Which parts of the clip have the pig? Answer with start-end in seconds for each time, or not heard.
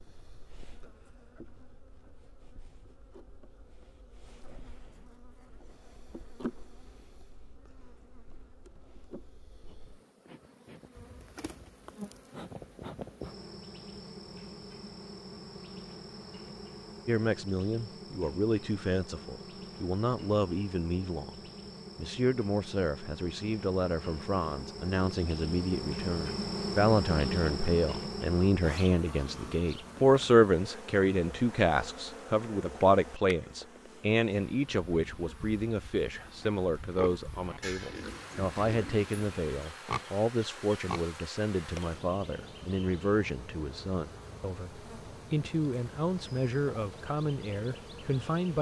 36.4-41.1.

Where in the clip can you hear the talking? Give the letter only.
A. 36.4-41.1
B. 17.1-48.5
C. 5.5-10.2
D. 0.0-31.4
B.